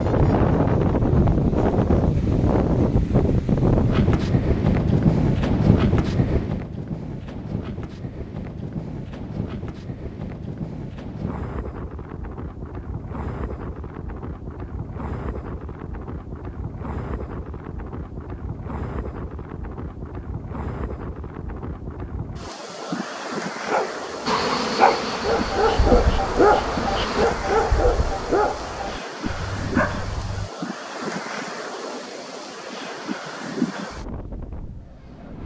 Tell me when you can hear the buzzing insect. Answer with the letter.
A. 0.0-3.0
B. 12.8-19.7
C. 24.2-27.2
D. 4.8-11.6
C.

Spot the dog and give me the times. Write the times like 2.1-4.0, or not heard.
23.6-30.5.